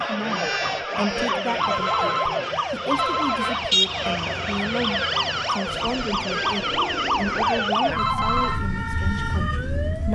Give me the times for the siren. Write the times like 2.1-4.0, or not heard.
0.0-10.1.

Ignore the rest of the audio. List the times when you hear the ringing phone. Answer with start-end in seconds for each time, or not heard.
1.6-3.5, 8.0-8.6.